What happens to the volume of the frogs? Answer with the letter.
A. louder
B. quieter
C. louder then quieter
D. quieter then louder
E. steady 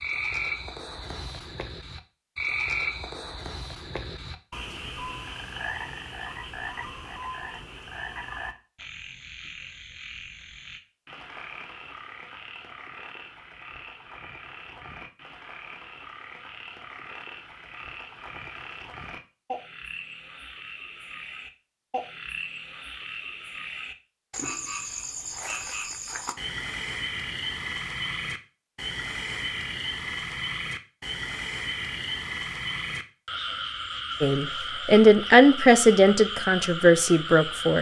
D.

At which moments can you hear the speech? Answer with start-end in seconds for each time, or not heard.
34.2-37.7.